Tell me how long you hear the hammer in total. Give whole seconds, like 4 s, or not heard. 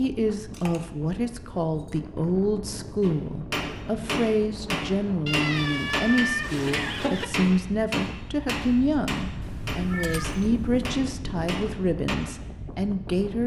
9 s.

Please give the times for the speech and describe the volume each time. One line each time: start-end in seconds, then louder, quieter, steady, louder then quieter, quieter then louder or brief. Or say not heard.
0.0-13.4 steady.